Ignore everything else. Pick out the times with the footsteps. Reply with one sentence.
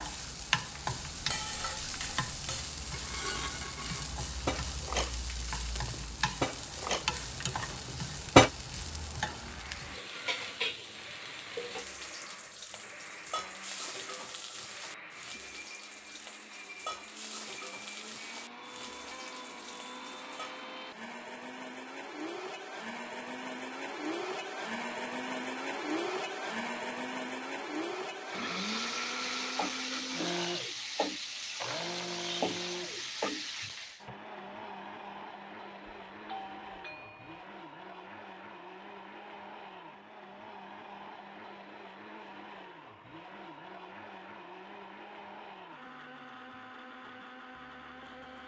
The footsteps can't be heard in this clip.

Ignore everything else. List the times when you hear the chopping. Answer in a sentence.
You can't hear the chopping here.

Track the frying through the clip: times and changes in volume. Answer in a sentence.
The frying can be heard from 0.0 to 20.6 s, getting quieter; and from 28.2 to 34.0 s, at a steady volume.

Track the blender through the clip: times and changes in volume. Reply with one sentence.
The blender can be heard from 9.2 to 48.4 s, getting louder then quieter.